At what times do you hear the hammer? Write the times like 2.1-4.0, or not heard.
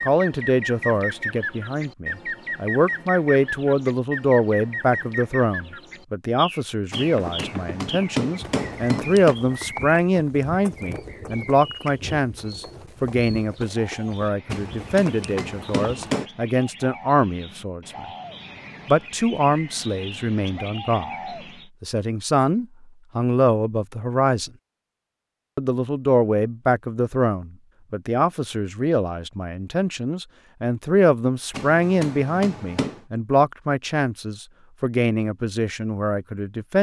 6.9-9.3, 14.5-16.2, 31.5-33.0.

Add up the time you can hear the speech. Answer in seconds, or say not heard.
34 s.